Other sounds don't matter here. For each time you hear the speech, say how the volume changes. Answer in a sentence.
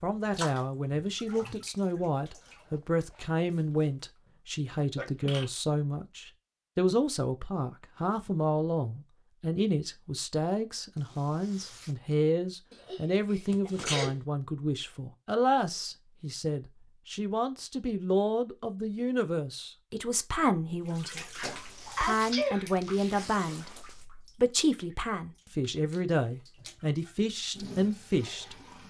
The speech can be heard from 0.0 to 28.6 s, at a steady volume.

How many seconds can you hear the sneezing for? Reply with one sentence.
The sneezing can be heard for 3 seconds in total.